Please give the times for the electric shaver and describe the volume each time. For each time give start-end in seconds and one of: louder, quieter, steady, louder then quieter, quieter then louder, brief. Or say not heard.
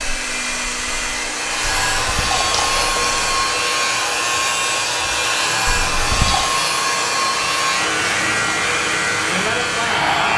1.4-10.3 steady.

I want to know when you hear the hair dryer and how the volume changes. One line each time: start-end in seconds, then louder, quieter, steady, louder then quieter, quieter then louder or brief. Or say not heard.
0.0-10.3 steady.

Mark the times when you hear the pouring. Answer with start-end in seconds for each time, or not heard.
1.8-3.4, 5.7-6.5.